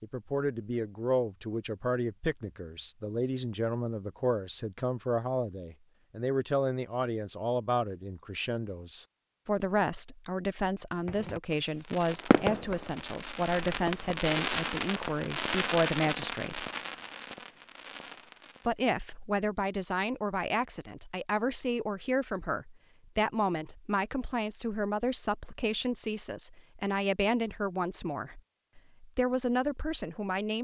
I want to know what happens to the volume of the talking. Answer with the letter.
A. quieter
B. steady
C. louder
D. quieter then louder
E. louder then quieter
B.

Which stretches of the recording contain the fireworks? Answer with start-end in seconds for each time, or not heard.
11.1-18.8.